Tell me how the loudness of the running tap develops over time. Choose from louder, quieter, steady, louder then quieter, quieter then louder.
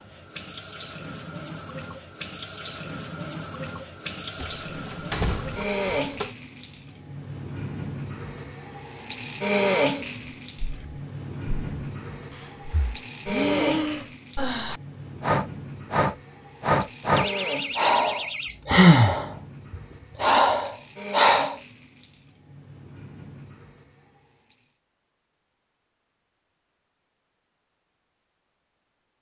louder then quieter.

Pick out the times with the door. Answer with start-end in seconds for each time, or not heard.
4.3-6.3, 17.1-18.9.